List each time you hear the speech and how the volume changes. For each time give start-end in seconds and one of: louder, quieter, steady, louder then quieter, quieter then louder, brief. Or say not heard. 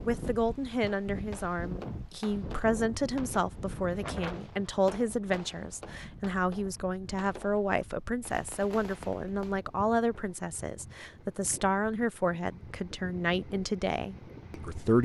0.0-15.0 steady.